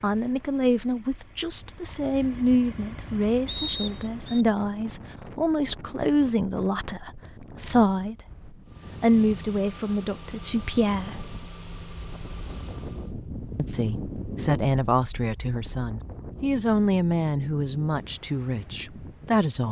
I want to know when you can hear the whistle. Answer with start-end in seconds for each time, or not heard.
3.5-4.5.